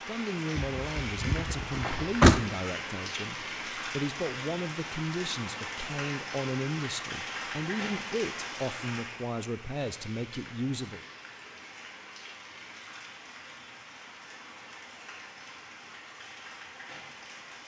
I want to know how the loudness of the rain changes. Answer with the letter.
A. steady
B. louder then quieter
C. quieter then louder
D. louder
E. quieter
E.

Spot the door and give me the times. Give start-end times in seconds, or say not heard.
0.6-2.4.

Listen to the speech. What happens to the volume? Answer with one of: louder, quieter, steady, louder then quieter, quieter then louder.
steady.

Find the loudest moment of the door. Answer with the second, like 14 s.
2 s.